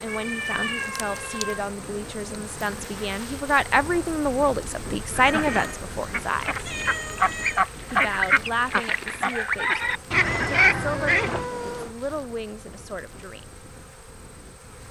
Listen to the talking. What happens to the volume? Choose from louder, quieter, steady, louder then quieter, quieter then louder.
louder then quieter.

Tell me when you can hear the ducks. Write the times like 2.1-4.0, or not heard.
5.1-11.4.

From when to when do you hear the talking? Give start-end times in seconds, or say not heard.
0.0-6.7, 7.9-13.4.